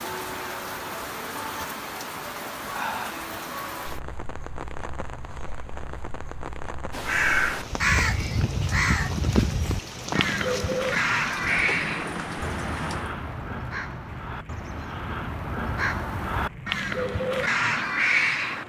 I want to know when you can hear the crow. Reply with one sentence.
The crow can be heard from 6.9 to 18.6 s.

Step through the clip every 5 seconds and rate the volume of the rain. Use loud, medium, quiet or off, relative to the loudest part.
loud, loud, loud, medium.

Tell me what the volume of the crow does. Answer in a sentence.
The volume of the crow goes down, then up.